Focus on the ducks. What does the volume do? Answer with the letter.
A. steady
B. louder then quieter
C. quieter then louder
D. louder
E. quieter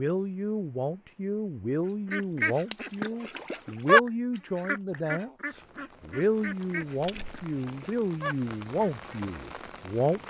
B.